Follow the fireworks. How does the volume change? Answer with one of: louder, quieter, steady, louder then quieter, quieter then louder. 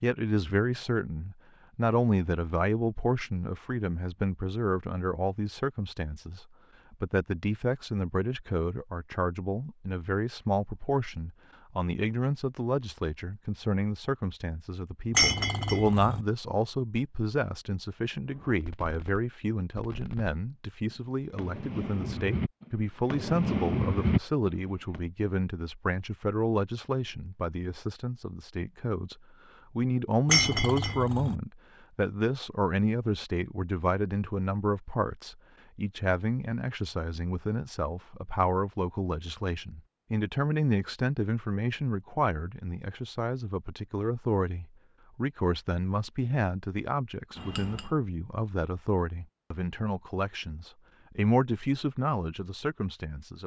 louder.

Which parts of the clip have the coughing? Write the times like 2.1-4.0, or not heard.
not heard.